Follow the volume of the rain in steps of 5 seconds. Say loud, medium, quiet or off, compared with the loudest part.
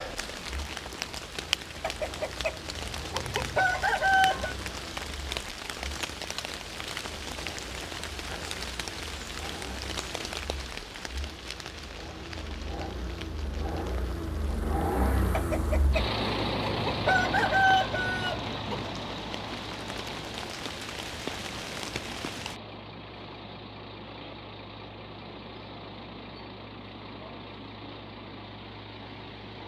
loud, loud, medium, medium, loud, off.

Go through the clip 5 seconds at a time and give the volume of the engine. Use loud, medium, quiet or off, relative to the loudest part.
quiet, quiet, medium, loud, medium, medium.